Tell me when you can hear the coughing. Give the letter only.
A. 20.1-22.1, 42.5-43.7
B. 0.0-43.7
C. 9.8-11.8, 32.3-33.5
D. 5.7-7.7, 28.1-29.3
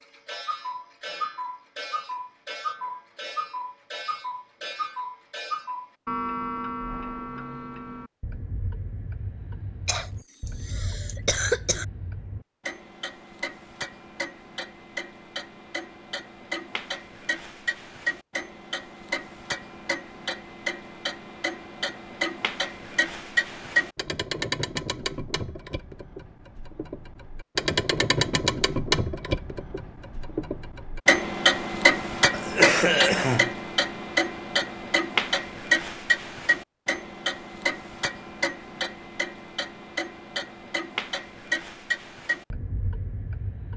C.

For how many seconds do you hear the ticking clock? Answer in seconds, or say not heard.
44 s.